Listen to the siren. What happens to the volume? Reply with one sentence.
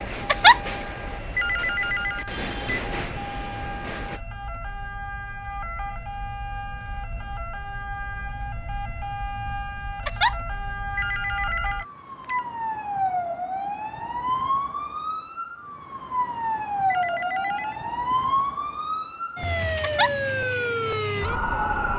The volume of the siren goes up.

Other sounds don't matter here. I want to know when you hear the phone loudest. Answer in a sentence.
The loudest moment of the phone is at 2 seconds.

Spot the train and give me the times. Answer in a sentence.
The train can be heard from 0.0 to 4.2 s.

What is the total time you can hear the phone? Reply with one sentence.
The phone can be heard for 4 seconds in total.